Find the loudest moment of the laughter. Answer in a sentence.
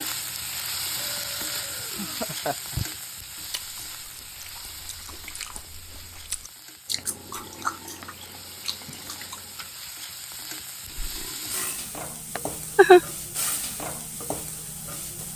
The volume of the laughter peaks at 13 seconds.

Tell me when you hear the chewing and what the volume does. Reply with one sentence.
You can hear the chewing from 3.4 to 9.7 s, getting louder then quieter.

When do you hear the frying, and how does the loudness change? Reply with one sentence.
You can hear the frying from 0.0 to 15.3 s, getting quieter then louder.